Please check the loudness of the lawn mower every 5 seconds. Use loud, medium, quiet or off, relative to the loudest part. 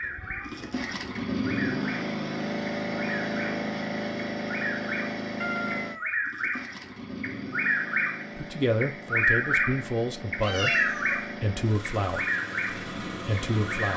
loud, medium, medium.